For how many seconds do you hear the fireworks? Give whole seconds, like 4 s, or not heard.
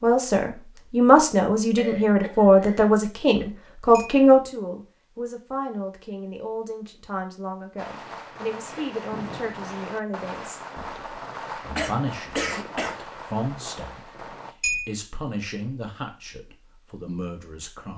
7 s.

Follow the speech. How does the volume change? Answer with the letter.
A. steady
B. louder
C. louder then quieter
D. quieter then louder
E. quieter
E.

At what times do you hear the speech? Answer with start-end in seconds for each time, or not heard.
0.0-17.9.